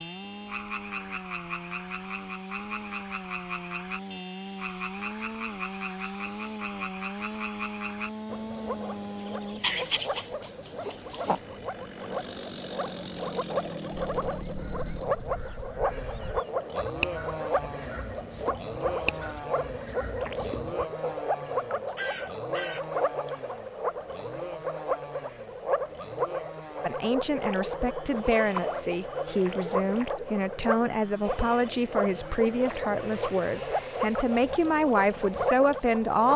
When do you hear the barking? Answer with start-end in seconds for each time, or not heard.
9.6-11.4.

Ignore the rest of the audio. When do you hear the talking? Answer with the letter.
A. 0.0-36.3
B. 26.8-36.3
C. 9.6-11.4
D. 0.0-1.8
B.